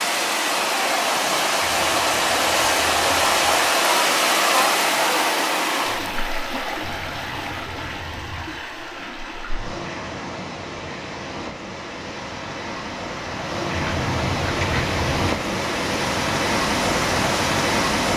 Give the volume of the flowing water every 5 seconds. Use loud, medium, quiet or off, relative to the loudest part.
loud, medium, medium, loud.